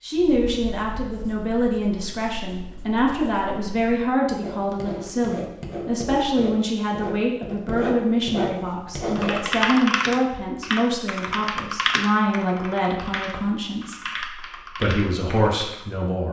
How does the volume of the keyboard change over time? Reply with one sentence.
The volume of the keyboard goes down.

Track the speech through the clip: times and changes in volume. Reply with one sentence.
The speech can be heard from 0.0 to 16.2 s, at a steady volume.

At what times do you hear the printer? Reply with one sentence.
The printer can't be heard in this clip.